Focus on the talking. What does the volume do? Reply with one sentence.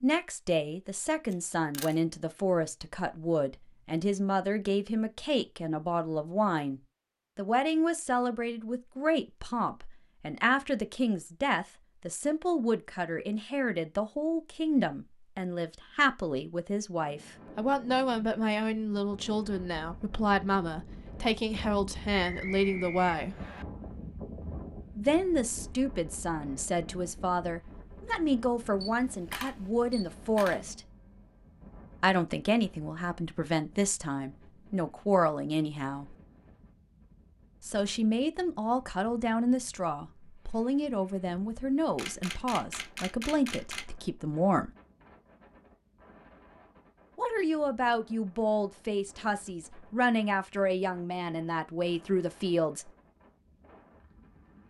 The volume of the talking stays about the same.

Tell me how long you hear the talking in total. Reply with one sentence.
You can hear the talking for 46 seconds altogether.